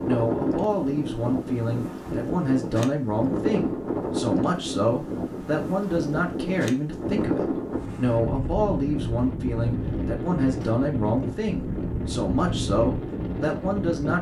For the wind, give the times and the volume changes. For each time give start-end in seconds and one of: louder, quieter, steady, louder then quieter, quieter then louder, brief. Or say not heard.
0.0-14.1 steady.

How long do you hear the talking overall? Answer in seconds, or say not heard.
14 s.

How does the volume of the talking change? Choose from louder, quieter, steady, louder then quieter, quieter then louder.
steady.